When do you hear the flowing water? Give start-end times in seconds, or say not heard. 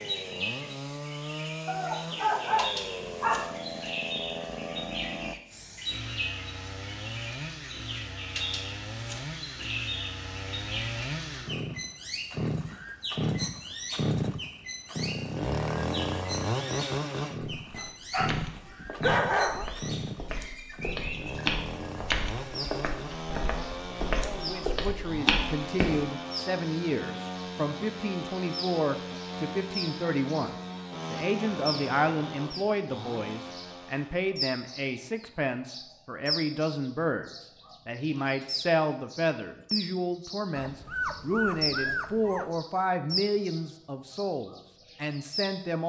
not heard.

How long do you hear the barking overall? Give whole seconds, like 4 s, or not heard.
6 s.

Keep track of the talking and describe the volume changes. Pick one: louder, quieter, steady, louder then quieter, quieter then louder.
steady.